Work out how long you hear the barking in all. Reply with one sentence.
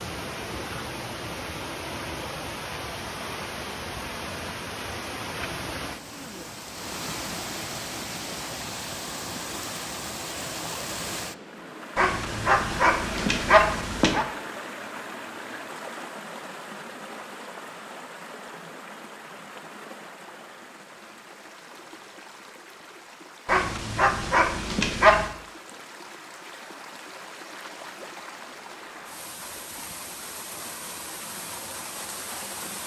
The barking can be heard for 4 seconds in total.